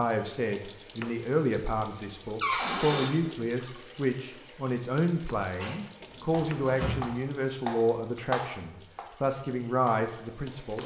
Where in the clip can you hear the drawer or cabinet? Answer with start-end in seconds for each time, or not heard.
2.4-3.1, 5.5-7.0.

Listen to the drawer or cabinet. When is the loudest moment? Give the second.
3 s.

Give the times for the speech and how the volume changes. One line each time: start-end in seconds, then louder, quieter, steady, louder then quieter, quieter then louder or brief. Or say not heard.
0.0-10.8 steady.